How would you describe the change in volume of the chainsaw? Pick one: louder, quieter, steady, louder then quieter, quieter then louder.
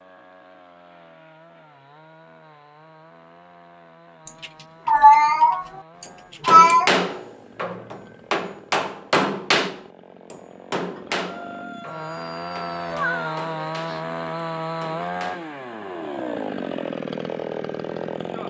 louder.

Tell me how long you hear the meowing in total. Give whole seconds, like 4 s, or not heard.
3 s.